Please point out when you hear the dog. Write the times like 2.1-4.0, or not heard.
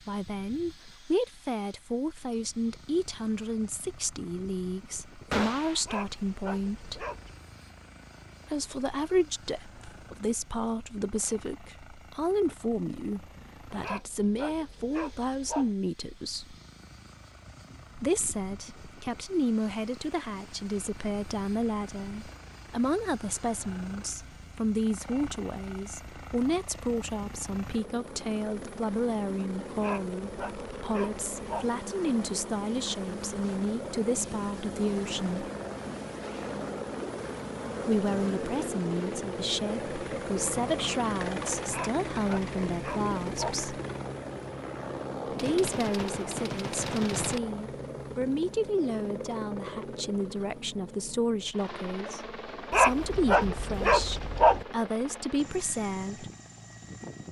5.8-7.4, 13.8-15.8, 29.8-31.8, 41.7-43.6, 52.7-54.6.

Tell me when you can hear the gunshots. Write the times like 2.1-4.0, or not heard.
5.3-5.8, 45.4-47.4.